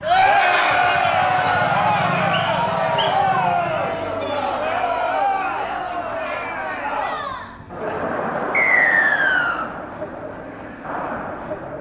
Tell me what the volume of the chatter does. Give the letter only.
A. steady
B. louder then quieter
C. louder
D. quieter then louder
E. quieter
E.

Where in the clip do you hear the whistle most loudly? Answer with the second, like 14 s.
9 s.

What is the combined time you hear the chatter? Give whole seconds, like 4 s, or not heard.
12 s.